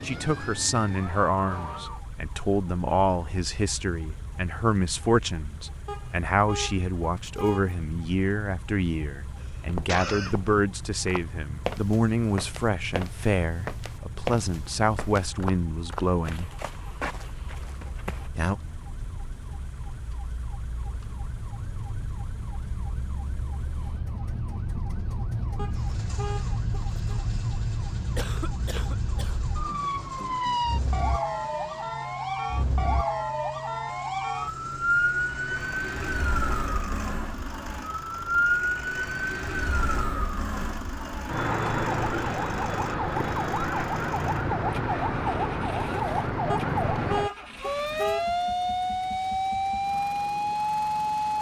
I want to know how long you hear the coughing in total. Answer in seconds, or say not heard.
2 s.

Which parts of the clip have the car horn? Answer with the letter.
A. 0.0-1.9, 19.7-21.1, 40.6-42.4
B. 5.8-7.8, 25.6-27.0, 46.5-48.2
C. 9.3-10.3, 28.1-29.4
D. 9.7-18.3
B.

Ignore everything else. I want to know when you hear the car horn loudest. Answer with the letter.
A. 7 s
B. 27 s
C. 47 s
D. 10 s
C.